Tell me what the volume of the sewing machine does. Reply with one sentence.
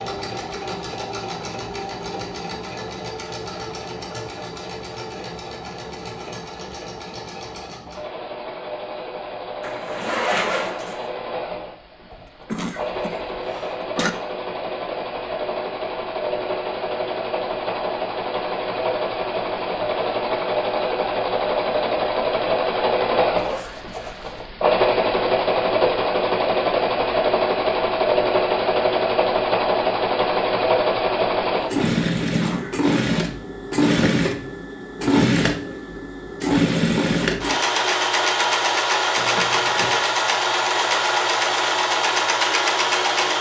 The loudness of the sewing machine goes up.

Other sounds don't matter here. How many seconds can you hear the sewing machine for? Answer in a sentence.
The sewing machine can be heard for 43 seconds in total.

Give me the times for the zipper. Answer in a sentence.
You can hear the zipper from 9.6 to 11.1 s, from 23.4 to 24.4 s and from 39.1 to 40.0 s.